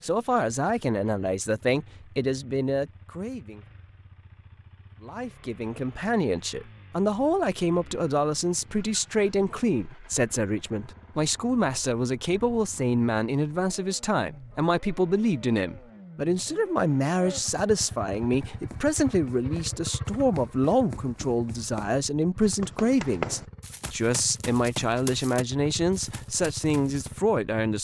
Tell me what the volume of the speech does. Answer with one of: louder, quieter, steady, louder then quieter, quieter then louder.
steady.